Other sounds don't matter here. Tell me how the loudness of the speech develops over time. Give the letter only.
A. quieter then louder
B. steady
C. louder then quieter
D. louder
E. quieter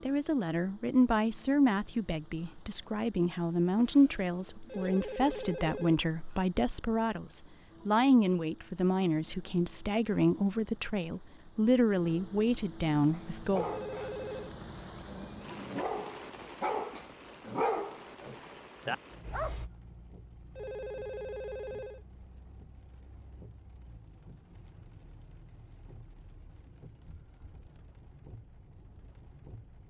B.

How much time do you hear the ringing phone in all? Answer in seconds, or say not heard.
4 s.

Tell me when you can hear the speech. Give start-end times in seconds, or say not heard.
0.0-13.7.